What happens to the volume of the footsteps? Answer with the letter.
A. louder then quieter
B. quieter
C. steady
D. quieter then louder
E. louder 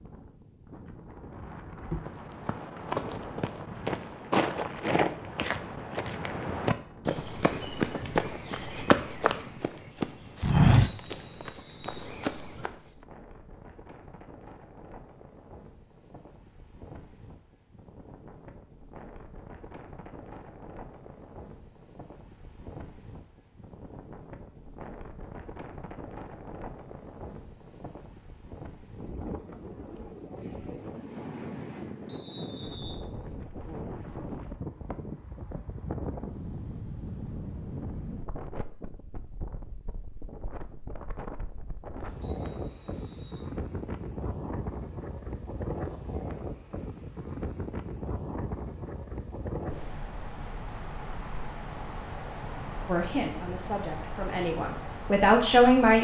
E.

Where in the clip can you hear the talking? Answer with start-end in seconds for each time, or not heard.
52.9-55.9.